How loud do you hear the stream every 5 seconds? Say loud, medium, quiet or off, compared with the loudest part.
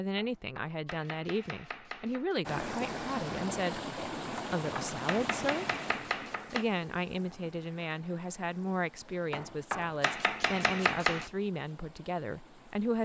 loud, medium, quiet.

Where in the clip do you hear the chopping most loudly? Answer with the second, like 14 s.
11 s.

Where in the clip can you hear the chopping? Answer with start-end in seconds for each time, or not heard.
0.1-2.4, 4.3-6.7, 9.3-11.3.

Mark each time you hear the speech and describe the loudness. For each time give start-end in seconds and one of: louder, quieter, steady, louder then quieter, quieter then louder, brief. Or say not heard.
0.0-5.7 steady
6.5-13.0 steady.